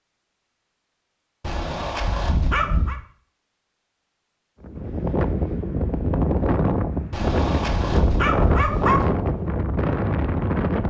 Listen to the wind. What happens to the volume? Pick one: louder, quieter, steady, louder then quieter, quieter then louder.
steady.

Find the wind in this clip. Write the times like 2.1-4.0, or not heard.
4.6-10.8.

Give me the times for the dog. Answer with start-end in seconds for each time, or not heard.
1.4-3.0, 7.1-9.1.